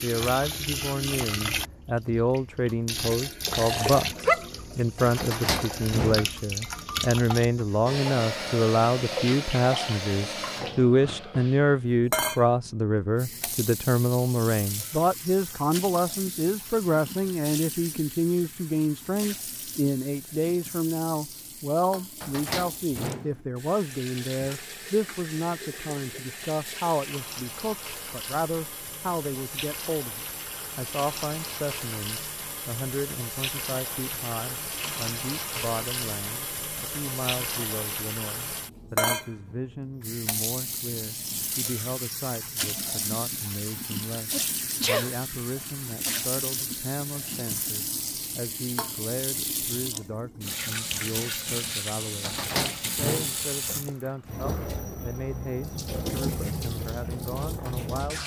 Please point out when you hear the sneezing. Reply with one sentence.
The sneezing can be heard from 3.5 to 4.5 s and from 44.3 to 45.1 s.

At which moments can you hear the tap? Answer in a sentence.
The tap can be heard from 0.0 to 58.2 s.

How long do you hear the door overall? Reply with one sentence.
You can hear the door for 4 seconds altogether.